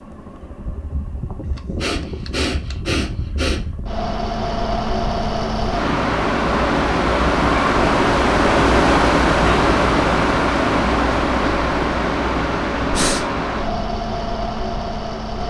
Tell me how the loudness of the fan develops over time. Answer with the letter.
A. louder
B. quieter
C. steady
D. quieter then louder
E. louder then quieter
E.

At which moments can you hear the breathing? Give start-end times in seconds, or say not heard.
1.8-3.6, 12.9-13.3.